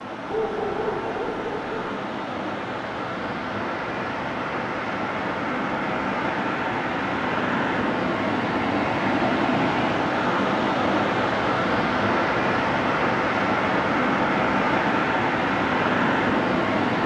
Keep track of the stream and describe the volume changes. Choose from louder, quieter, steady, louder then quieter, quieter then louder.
louder.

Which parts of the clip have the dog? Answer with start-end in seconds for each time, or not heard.
0.3-1.7.